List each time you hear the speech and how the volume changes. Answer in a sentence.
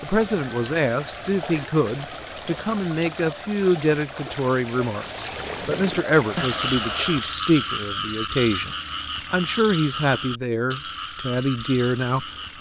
You can hear the speech from 0.0 to 12.5 s, at a steady volume.